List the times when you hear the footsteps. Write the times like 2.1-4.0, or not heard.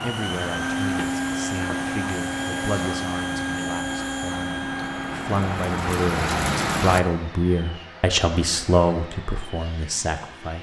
not heard.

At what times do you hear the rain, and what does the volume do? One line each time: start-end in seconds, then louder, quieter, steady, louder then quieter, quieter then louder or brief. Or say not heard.
0.0-7.0 louder.